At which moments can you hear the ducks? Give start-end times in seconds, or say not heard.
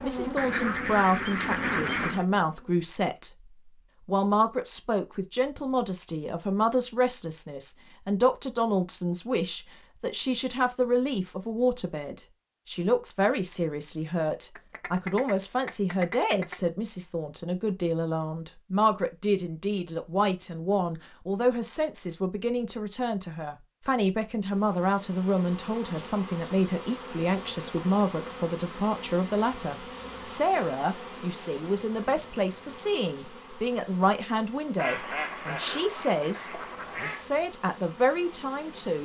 0.3-2.2, 14.6-16.6, 34.8-37.3.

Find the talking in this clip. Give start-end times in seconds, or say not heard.
0.0-3.4, 4.0-38.9.